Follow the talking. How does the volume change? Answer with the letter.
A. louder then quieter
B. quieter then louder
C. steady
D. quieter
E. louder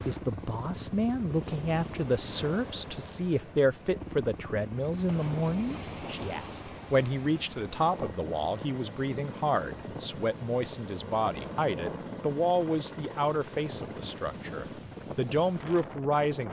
C.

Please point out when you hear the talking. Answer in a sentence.
You can hear the talking from 0.1 to 16.4 s.